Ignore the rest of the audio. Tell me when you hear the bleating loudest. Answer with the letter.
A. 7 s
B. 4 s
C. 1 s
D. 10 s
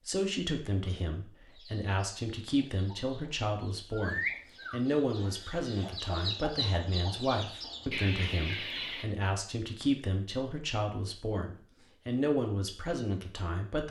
B.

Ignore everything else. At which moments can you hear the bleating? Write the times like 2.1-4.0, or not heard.
3.9-5.9.